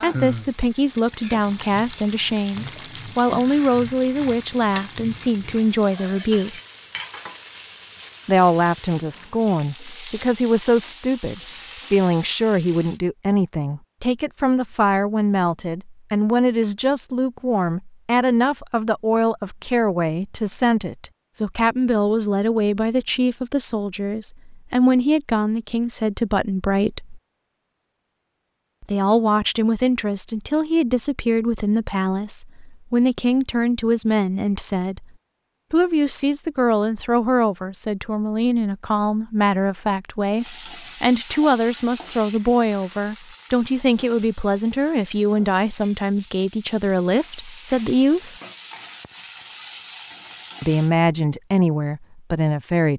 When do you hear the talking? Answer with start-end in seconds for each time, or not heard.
0.0-6.6, 8.2-27.2, 28.8-35.0, 35.7-48.4, 50.6-52.9.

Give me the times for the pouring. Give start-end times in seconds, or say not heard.
not heard.